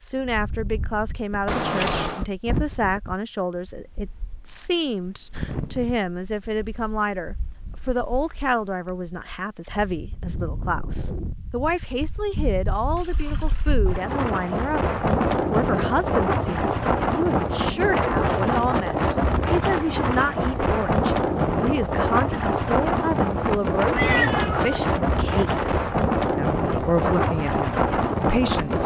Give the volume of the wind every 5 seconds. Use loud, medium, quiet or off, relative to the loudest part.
quiet, quiet, medium, loud, loud, loud.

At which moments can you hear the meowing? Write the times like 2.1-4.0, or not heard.
1.4-2.2, 23.9-24.8.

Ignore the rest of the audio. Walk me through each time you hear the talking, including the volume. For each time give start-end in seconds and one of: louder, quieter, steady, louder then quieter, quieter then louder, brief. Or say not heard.
0.0-28.8 steady.